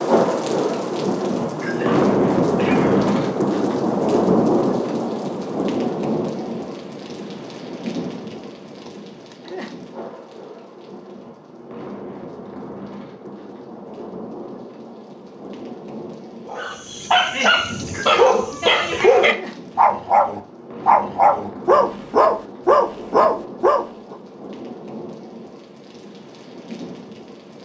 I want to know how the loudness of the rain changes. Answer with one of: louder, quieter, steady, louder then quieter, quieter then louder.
quieter.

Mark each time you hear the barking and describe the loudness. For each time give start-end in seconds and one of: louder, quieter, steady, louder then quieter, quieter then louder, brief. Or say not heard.
16.4-24.1 steady.